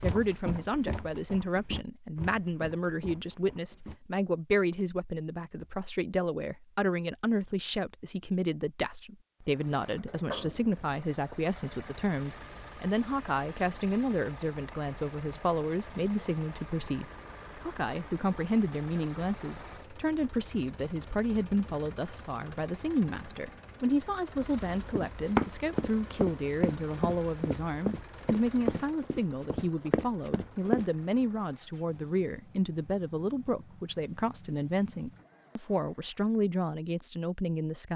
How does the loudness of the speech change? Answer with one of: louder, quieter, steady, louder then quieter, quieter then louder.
steady.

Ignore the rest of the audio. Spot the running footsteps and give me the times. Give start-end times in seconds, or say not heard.
0.0-4.0, 24.9-30.9.